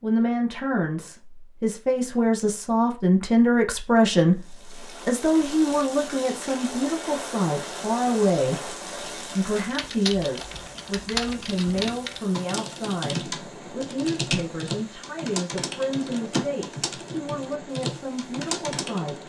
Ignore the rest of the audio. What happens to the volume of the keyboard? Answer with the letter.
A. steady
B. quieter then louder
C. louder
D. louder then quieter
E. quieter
A.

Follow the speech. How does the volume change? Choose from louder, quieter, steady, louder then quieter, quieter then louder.
quieter.